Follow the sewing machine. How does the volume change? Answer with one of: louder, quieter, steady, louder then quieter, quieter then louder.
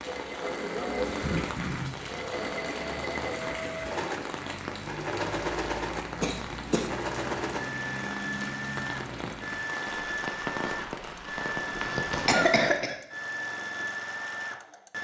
steady.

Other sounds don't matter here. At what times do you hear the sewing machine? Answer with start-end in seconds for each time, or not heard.
0.0-14.9.